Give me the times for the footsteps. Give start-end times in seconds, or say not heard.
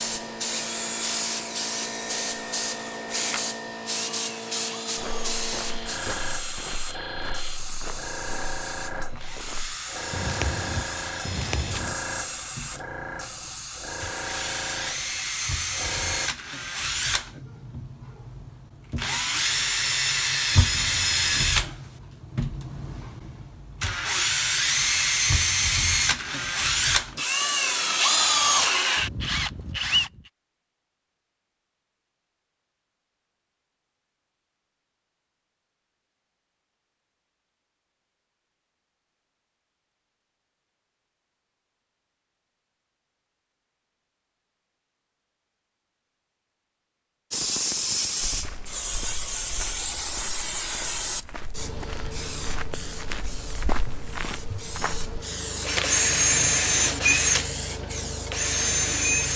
5.0-11.9, 48.2-55.1.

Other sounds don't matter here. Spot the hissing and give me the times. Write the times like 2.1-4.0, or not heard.
0.0-16.3, 47.3-59.3.